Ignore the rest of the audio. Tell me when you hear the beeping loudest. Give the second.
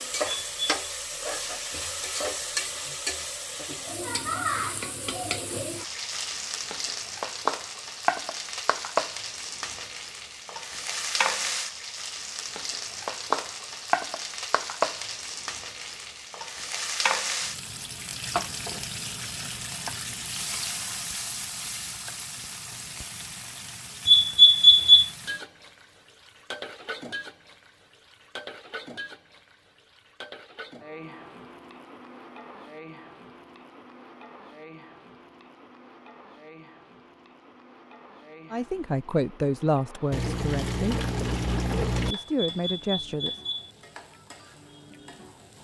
25 s.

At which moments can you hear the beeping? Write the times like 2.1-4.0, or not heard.
0.2-0.7, 24.1-25.1, 42.1-43.7.